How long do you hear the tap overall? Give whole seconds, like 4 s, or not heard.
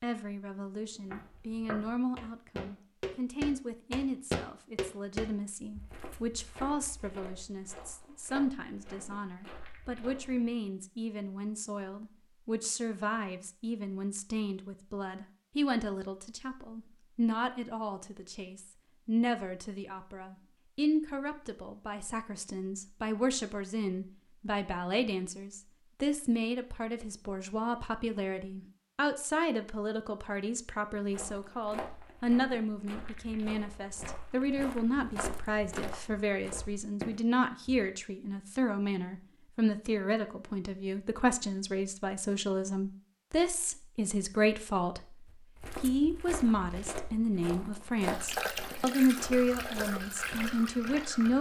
3 s.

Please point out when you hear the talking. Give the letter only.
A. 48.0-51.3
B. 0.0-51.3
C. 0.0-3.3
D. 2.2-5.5
B.